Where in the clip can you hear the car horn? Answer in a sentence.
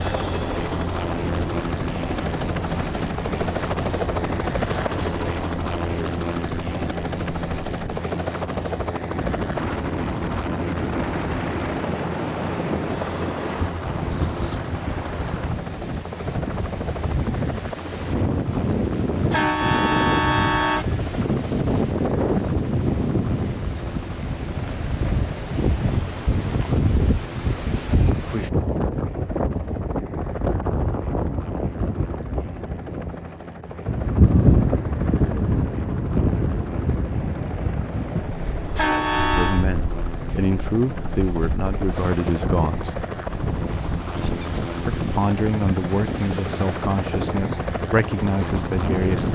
The car horn can be heard from 19.3 to 20.9 s and from 38.8 to 39.6 s.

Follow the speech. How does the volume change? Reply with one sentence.
The loudness of the speech stays about the same.